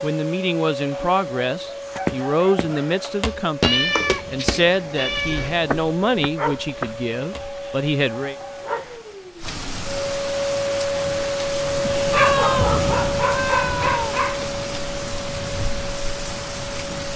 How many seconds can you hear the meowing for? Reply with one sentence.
The meowing can be heard for 4 seconds in total.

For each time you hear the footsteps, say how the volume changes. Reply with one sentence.
You can hear the footsteps from 1.9 to 7.5 s, getting louder then quieter.